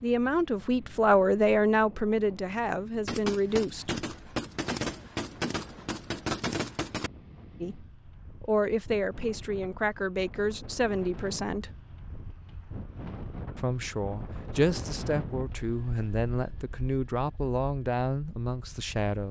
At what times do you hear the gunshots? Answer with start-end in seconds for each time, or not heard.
3.0-7.1.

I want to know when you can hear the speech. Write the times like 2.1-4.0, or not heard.
0.0-4.0, 7.6-11.7, 13.6-19.2.